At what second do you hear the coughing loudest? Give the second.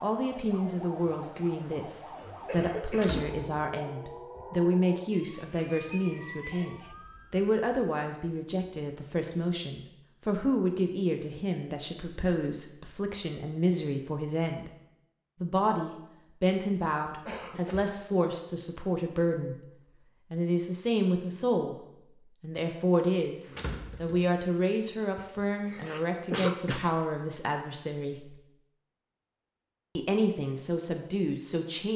26 s.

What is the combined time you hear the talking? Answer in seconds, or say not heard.
28 s.